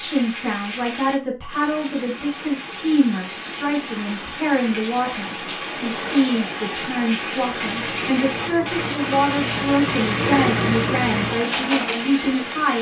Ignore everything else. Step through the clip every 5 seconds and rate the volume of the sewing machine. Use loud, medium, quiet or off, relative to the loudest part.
off, medium, loud.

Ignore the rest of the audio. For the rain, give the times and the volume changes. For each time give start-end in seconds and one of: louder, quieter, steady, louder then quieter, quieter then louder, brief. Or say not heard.
0.0-12.7 louder.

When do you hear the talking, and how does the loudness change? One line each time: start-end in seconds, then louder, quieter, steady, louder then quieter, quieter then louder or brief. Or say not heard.
0.0-12.7 steady.